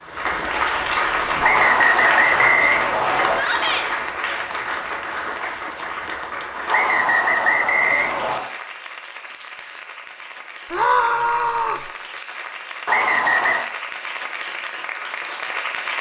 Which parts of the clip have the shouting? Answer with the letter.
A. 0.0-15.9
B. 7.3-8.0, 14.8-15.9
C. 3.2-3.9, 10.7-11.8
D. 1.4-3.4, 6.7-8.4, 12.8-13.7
C.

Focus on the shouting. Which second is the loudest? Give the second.
11 s.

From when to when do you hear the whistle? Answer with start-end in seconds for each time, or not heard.
1.4-3.4, 6.7-8.4, 12.8-13.7.